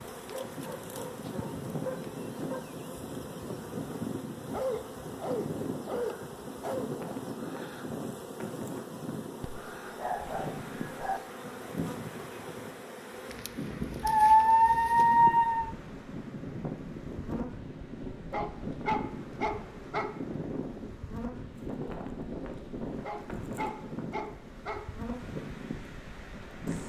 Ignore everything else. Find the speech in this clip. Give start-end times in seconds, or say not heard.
not heard.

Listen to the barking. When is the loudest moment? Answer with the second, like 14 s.
14 s.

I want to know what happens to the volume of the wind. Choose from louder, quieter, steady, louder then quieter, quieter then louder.
steady.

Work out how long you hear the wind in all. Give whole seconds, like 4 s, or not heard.
27 s.